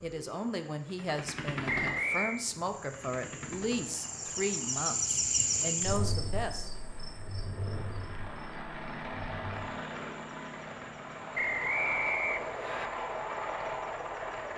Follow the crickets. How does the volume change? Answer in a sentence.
The loudness of the crickets goes up, then down.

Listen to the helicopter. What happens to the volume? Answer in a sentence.
The volume of the helicopter goes down, then up.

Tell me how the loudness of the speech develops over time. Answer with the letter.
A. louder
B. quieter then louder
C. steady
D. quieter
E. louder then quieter
C.